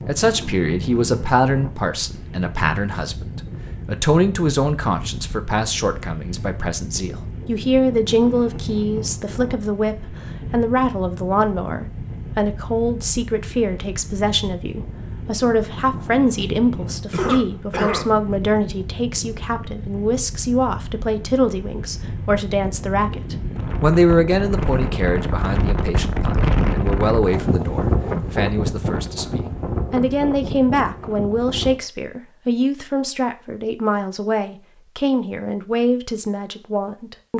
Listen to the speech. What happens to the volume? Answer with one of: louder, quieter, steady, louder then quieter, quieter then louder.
steady.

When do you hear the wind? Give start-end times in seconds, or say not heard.
0.0-31.8.